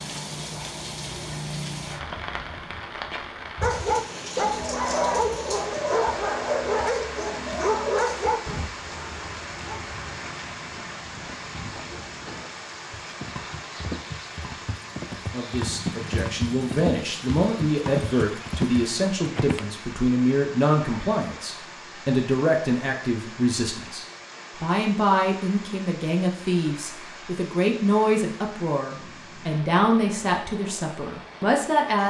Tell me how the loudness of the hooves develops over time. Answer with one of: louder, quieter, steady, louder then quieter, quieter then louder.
louder.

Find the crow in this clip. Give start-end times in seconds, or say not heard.
not heard.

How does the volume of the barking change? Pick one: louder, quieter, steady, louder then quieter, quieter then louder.
quieter.